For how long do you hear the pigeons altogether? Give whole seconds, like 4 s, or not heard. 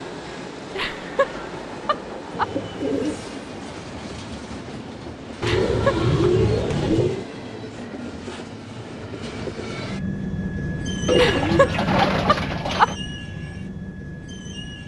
5 s.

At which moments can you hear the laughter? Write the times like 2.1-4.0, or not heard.
0.8-2.5, 5.4-6.0, 11.2-12.9.